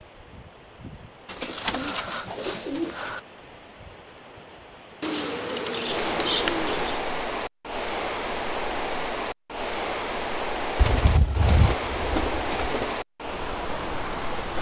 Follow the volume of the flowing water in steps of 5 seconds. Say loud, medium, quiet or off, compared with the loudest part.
quiet, loud, loud.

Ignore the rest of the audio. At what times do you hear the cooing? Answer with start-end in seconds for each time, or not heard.
1.2-3.2, 5.0-7.0, 10.8-12.9.